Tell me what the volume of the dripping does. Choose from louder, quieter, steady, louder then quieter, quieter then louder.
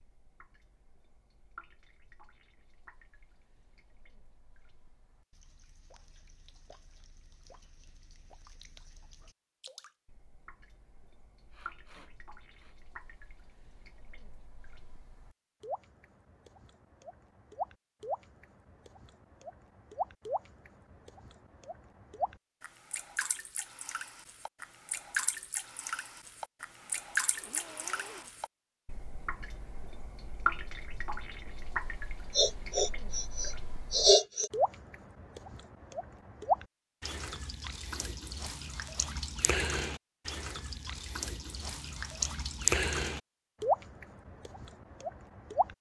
louder.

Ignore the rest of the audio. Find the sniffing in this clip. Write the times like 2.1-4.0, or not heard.
11.5-12.8, 26.8-28.3, 32.4-34.5.